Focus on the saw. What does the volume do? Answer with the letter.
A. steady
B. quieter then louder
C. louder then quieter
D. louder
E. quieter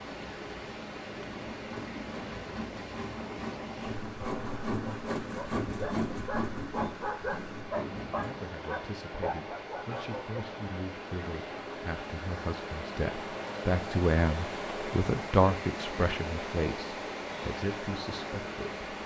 C.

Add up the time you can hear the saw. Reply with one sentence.
You can hear the saw for 7 seconds altogether.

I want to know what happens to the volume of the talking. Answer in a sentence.
The loudness of the talking goes up, then down.